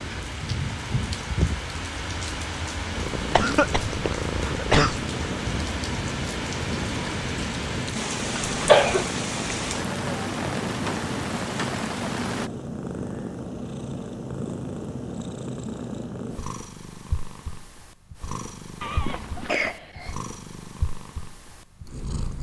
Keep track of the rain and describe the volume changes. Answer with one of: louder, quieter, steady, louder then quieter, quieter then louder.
steady.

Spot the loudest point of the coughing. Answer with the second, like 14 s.
9 s.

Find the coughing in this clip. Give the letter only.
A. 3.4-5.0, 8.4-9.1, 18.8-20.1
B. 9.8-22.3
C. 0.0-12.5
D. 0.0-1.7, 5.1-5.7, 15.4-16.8
A.